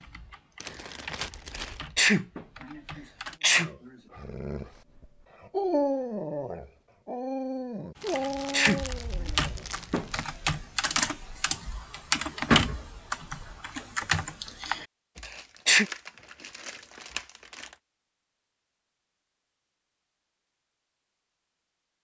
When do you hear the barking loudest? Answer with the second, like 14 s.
6 s.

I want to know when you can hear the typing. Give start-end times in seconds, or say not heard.
0.0-3.4, 8.0-14.8.